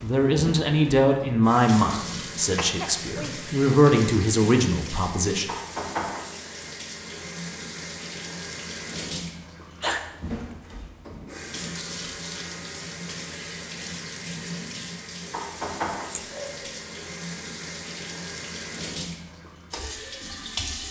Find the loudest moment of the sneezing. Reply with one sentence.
The loudest moment of the sneezing is at 10 seconds.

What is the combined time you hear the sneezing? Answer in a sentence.
The sneezing can be heard for 2 seconds in total.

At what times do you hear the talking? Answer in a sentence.
The talking can be heard from 0.0 to 5.5 s.